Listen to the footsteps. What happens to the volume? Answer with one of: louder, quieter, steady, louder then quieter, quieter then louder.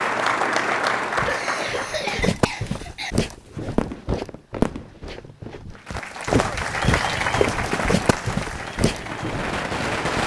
quieter then louder.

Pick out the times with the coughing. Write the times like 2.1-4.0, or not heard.
1.2-3.1, 5.8-6.6.